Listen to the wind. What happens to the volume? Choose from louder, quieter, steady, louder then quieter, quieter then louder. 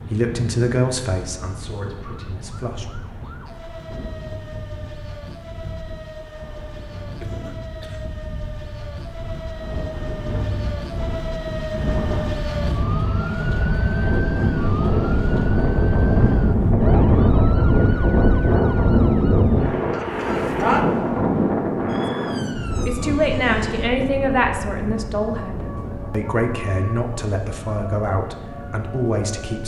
louder then quieter.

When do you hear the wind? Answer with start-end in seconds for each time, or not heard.
0.0-29.6.